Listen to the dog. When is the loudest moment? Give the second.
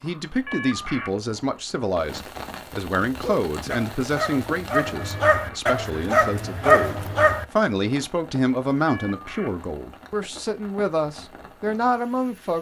7 s.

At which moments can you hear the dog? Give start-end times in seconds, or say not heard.
3.0-7.5.